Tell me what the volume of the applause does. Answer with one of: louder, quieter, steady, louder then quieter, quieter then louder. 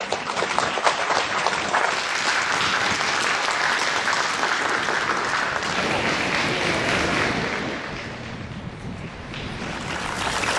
quieter.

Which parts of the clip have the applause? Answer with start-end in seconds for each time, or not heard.
0.0-10.5.